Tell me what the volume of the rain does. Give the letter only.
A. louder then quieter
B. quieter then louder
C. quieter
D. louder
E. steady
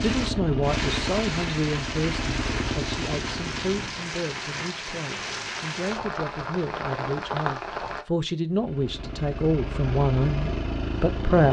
E.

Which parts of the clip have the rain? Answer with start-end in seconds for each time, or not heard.
0.0-8.1.